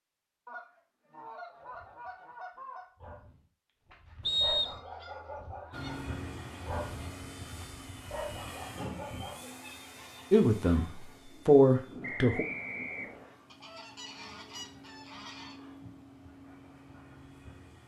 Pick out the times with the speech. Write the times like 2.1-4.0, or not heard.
10.3-12.4.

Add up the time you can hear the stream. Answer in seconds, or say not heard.
not heard.